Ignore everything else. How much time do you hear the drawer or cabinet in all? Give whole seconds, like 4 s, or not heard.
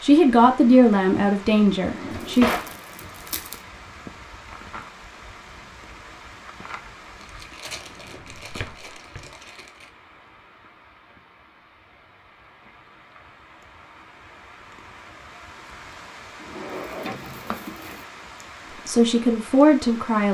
3 s.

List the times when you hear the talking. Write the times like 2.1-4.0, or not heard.
0.0-2.5, 18.9-20.2.